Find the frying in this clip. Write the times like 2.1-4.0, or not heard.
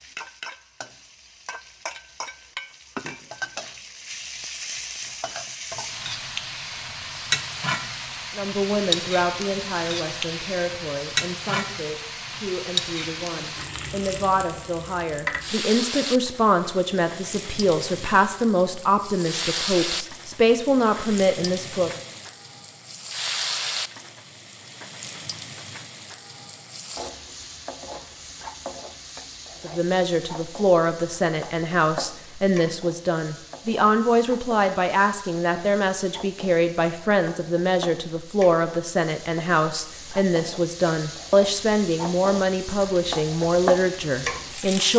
0.0-44.9.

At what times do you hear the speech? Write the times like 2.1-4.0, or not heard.
8.3-21.9, 29.6-44.9.